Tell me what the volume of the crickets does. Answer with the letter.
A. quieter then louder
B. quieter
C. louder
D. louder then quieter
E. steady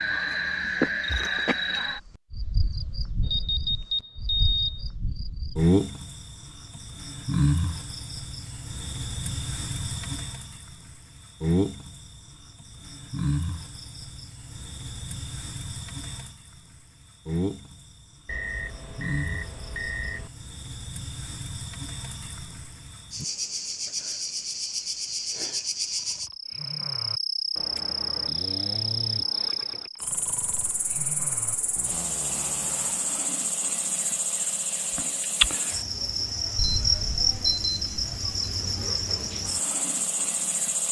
A.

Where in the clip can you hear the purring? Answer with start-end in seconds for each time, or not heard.
not heard.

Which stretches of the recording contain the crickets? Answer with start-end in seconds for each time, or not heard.
0.0-40.8.